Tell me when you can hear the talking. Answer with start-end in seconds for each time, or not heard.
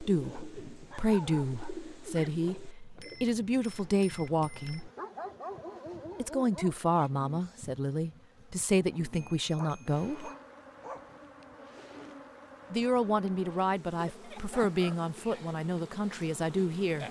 0.0-4.9, 6.2-10.3, 12.7-17.0.